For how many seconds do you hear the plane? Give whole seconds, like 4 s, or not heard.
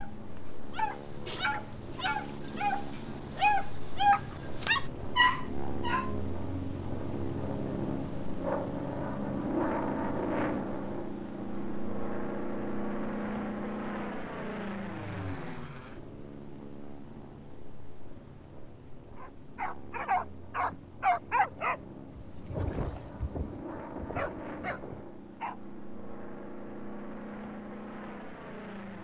29 s.